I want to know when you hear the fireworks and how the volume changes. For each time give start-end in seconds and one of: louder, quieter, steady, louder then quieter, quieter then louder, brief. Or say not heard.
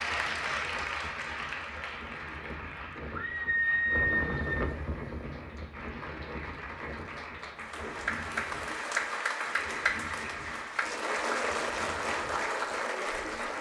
not heard.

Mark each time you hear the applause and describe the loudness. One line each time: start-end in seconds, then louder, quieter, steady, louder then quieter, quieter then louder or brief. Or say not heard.
0.0-13.5 quieter then louder.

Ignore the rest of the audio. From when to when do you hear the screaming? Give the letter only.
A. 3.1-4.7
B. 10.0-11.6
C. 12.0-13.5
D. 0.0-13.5
A.